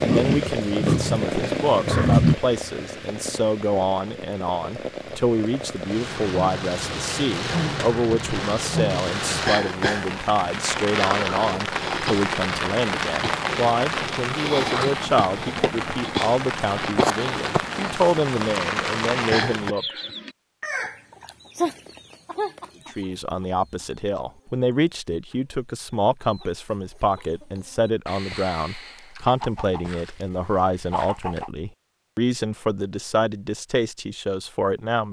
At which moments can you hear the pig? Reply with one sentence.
You can hear the pig from 0.0 to 2.4 s.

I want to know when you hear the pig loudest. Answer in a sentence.
The volume of the pig peaks at 2 seconds.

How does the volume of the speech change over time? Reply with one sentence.
The loudness of the speech stays about the same.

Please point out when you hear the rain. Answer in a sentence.
The rain can be heard from 0.0 to 19.8 s.